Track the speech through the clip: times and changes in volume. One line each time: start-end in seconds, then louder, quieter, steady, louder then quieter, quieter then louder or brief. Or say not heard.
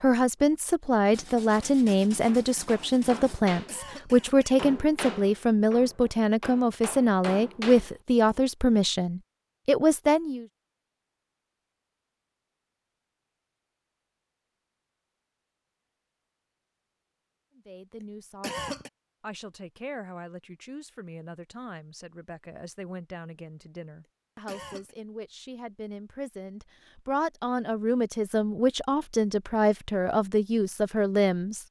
0.0-10.4 steady
17.6-31.6 louder.